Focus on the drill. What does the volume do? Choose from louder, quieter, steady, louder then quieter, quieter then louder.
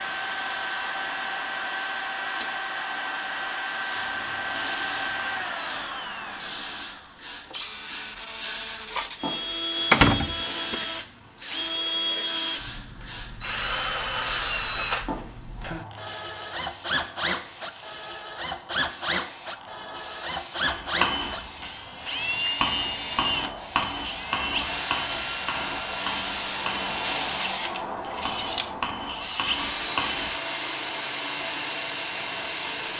steady.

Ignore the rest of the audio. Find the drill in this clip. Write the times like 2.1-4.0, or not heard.
0.0-32.9.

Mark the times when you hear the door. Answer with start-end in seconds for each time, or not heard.
9.9-10.8.